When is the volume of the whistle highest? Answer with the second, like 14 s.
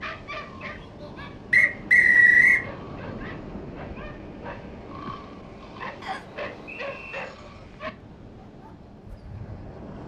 2 s.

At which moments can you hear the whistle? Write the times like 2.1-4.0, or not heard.
1.5-2.6, 6.0-7.2.